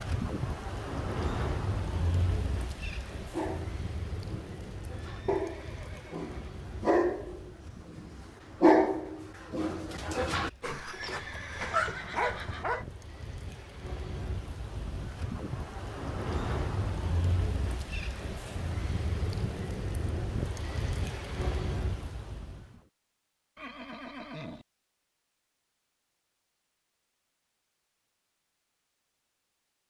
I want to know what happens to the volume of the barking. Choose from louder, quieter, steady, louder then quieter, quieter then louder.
louder then quieter.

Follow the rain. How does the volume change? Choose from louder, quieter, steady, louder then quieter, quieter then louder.
quieter then louder.